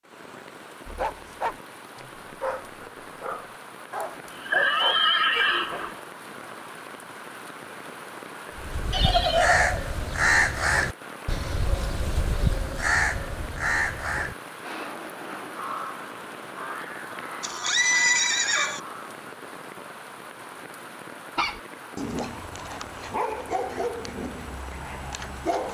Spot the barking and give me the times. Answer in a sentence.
The barking can be heard from 0.8 to 6.0 s and from 21.4 to 25.6 s.